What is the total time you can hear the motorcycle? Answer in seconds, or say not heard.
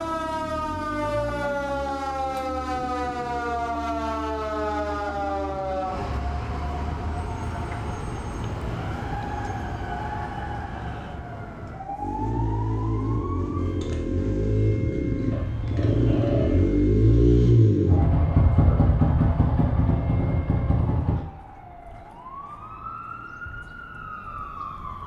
15 s.